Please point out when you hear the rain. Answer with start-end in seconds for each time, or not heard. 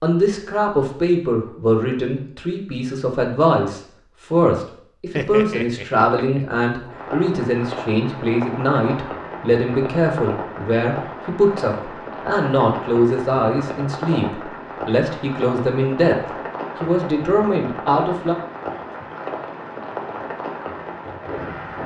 6.9-21.8.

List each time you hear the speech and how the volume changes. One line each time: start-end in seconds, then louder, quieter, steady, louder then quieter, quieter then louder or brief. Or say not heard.
0.0-18.4 steady.